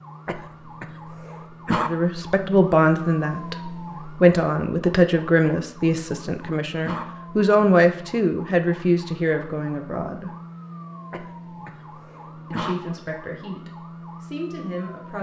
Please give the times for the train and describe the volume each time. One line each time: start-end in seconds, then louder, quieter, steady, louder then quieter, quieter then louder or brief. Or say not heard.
not heard.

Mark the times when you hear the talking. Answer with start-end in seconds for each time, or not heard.
1.8-10.3, 12.5-15.1.